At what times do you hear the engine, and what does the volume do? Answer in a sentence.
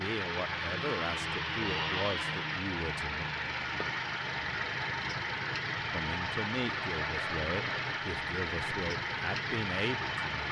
You can hear the engine from 0.0 to 10.4 s, at a steady volume.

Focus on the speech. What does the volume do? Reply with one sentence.
The loudness of the speech stays about the same.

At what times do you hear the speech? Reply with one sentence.
The speech can be heard from 0.0 to 3.2 s and from 5.9 to 10.4 s.